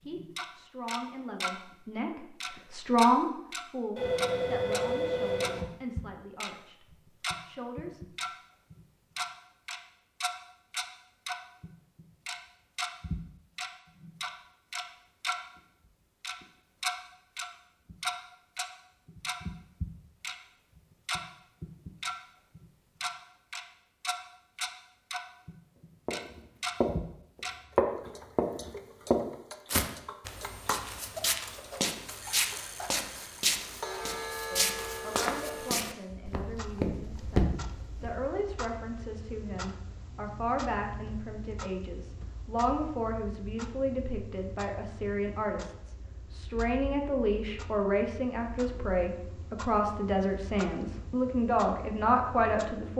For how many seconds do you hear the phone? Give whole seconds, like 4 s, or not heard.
2 s.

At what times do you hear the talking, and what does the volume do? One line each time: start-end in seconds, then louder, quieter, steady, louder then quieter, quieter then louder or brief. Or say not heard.
0.0-8.2 louder then quieter
34.5-52.9 louder.